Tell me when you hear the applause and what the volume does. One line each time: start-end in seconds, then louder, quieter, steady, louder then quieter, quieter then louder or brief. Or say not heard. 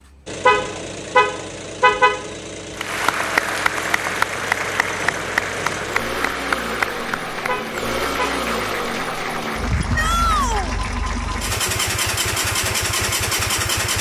2.8-13.7 quieter.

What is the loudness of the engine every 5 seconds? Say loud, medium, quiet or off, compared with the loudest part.
medium, loud, loud.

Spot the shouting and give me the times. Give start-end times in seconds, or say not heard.
9.9-10.8.